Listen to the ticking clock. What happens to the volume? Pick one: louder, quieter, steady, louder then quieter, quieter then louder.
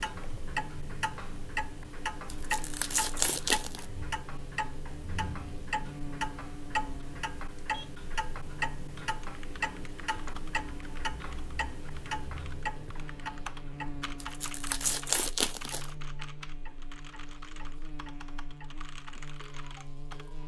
quieter.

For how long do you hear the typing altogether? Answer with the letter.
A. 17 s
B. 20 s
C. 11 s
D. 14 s
C.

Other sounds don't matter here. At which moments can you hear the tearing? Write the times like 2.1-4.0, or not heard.
2.3-3.9, 14.2-15.9.